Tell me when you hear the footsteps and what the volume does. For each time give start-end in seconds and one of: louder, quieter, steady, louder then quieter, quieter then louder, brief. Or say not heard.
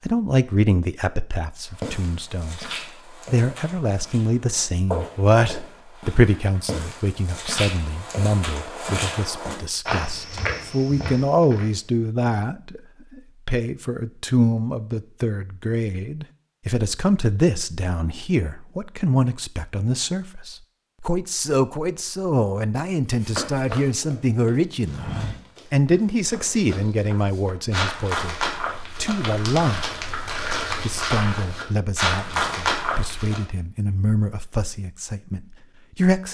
1.6-11.7 louder
23.1-33.4 quieter then louder.